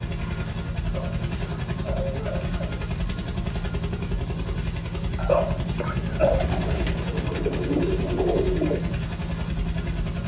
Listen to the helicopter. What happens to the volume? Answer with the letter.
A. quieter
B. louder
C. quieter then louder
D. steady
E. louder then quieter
D.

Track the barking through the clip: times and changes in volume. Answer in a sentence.
The barking can't be heard in this clip.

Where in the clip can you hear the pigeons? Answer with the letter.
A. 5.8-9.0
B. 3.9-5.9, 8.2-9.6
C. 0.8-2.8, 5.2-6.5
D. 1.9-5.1
A.